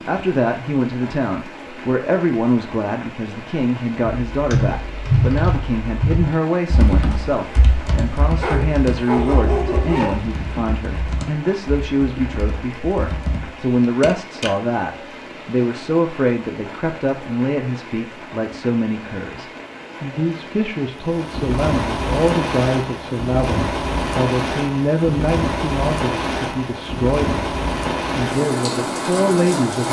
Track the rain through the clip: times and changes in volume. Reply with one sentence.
The rain can be heard from 0.0 to 29.8 s, getting louder.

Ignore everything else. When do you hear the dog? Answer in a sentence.
You can hear the dog from 8.3 to 10.2 s.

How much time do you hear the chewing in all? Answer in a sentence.
The chewing can't be heard in this clip.